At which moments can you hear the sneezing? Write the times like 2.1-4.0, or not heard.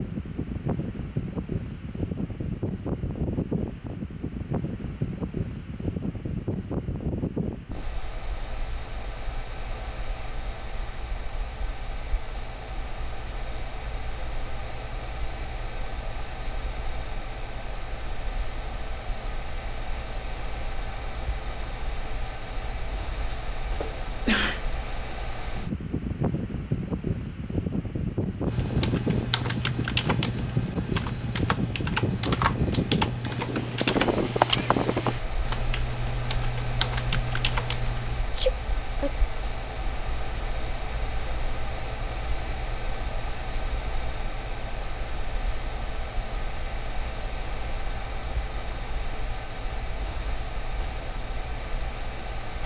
23.3-24.6, 38.4-39.1.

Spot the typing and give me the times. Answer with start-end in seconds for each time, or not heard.
28.4-38.2.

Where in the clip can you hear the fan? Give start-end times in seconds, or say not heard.
0.0-52.6.